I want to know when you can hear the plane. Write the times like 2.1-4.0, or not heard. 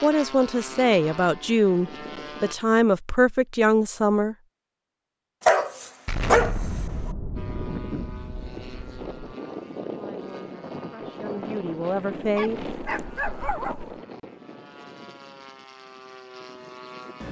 0.0-2.5, 7.3-17.2.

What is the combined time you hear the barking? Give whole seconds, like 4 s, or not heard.
3 s.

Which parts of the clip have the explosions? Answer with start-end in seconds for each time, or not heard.
6.0-9.3.